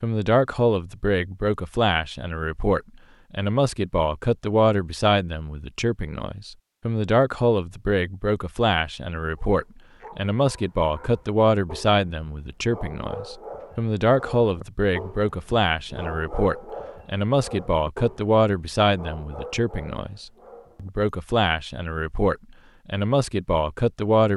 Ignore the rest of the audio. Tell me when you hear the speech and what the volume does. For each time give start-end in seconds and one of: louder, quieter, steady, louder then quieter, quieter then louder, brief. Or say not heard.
0.0-24.3 steady.